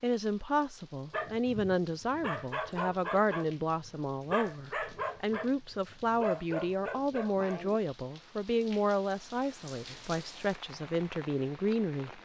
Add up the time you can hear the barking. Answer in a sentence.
The barking can be heard for 7 seconds in total.